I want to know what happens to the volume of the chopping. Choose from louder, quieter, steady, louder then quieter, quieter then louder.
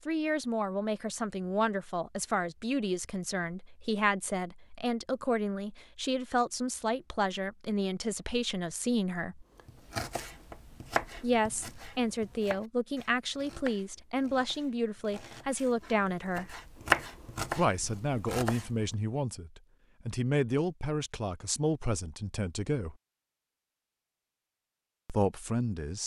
quieter then louder.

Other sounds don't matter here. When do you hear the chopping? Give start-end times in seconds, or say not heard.
9.6-18.9.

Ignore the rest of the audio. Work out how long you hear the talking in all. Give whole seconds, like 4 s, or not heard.
21 s.